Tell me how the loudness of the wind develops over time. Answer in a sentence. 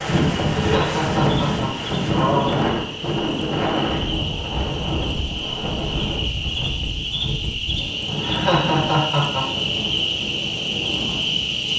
The loudness of the wind goes down.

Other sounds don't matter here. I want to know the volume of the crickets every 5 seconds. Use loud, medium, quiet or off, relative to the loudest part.
medium, loud, loud.